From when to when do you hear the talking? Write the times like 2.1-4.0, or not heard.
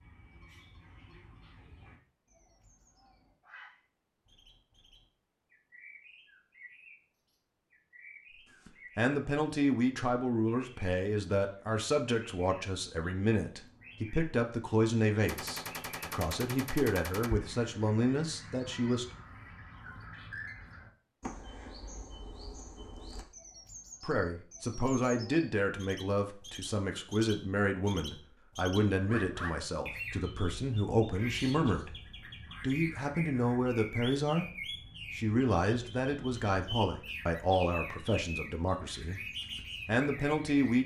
8.7-19.1, 24.0-34.5, 35.1-40.8.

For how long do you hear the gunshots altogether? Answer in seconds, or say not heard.
2 s.